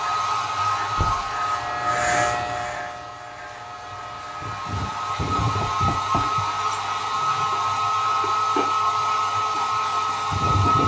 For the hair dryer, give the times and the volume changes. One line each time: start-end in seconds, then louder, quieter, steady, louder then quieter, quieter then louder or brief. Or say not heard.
0.0-10.8 quieter then louder.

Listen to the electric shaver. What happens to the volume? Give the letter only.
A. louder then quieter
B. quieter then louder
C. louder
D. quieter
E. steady
A.